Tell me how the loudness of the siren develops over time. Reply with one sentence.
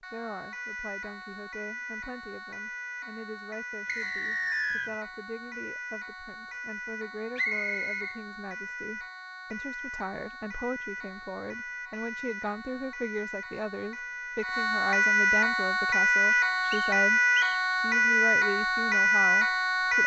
The volume of the siren goes up.